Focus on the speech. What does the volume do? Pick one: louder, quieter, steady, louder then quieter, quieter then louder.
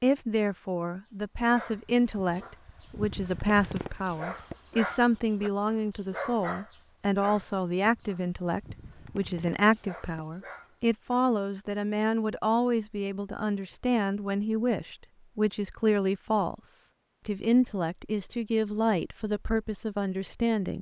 steady.